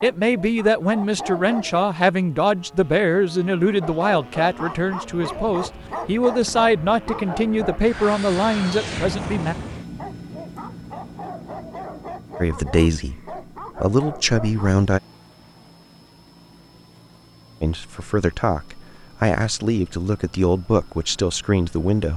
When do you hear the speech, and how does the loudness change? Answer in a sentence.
The speech can be heard from 0.0 to 9.6 s, at a steady volume; briefly from 12.4 to 15.0 s; and from 17.6 to 22.1 s, at a steady volume.